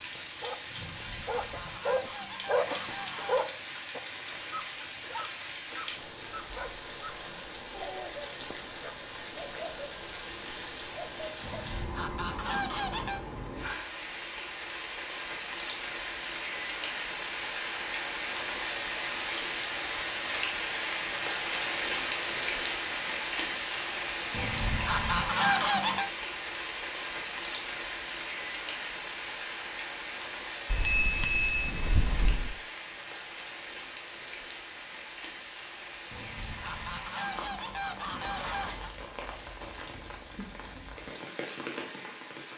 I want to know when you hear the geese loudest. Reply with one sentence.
The loudest moment of the geese is at 26 seconds.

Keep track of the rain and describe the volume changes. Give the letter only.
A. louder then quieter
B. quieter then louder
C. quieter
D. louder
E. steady
A.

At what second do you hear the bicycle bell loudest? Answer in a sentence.
The volume of the bicycle bell peaks at 31 seconds.